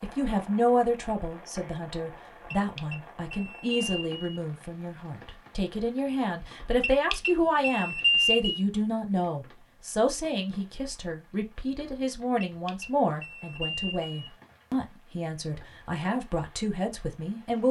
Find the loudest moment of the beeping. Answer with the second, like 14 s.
8 s.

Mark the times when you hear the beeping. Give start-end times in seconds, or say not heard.
2.5-4.2, 6.8-8.6, 12.4-14.3.